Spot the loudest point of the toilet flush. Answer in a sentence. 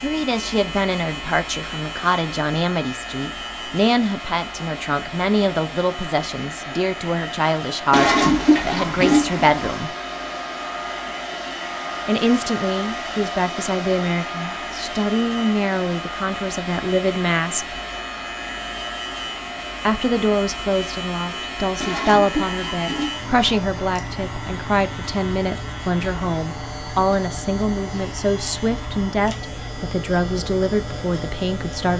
The loudest moment of the toilet flush is at 9 seconds.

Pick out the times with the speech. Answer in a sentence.
You can hear the speech from 0.0 to 9.9 s, from 12.1 to 17.8 s and from 19.9 to 31.9 s.